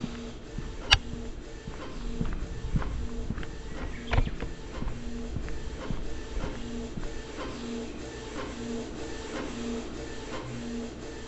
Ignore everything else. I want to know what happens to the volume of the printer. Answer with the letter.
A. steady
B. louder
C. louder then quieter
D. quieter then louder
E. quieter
B.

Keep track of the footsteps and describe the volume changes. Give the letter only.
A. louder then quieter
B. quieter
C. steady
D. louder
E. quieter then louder
B.